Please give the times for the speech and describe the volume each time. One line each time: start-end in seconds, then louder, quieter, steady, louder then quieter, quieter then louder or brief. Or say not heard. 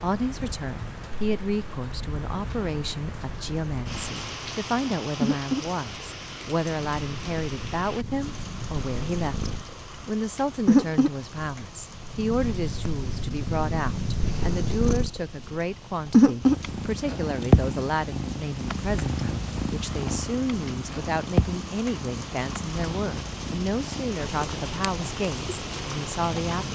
0.0-26.6 steady.